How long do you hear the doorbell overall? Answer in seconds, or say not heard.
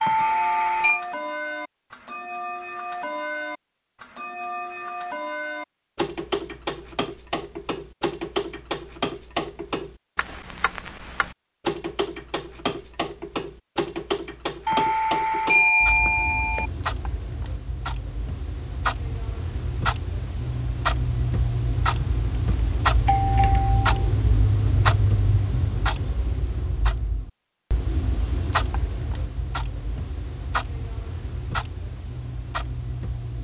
4 s.